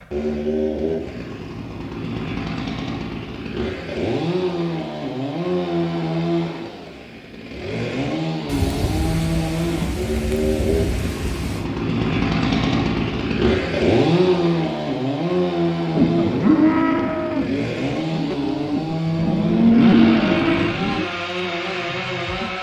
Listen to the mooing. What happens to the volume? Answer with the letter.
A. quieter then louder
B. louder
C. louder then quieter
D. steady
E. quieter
A.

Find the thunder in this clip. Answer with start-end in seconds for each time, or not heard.
8.4-11.7.